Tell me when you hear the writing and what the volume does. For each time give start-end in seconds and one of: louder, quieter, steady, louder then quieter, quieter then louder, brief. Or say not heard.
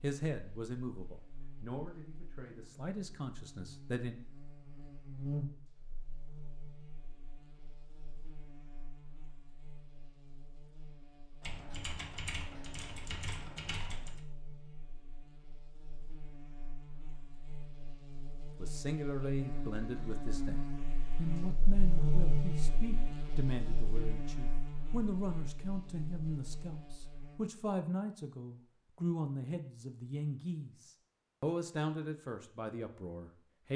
not heard.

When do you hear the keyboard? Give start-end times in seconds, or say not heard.
11.4-14.2.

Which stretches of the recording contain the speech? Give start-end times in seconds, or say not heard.
0.0-4.2, 18.6-33.7.